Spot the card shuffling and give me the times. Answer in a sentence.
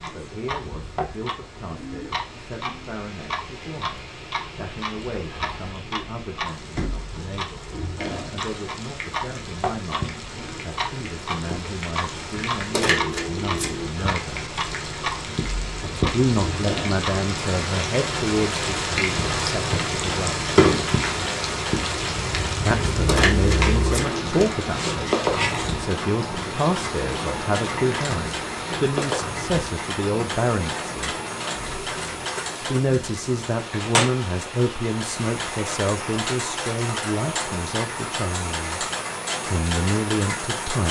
You can hear the card shuffling from 12.7 to 13.8 s and from 23.1 to 24.4 s.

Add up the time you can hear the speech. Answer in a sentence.
The speech can be heard for 35 seconds in total.